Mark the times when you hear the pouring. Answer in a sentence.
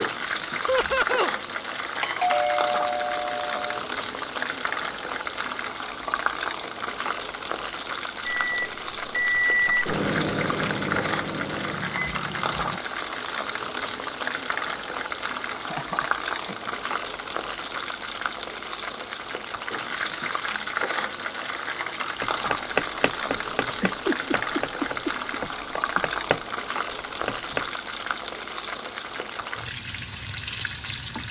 You can't hear the pouring here.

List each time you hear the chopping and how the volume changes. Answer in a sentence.
The chopping can be heard from 22.2 to 26.4 s, getting quieter; and briefly from 27.2 to 27.6 s.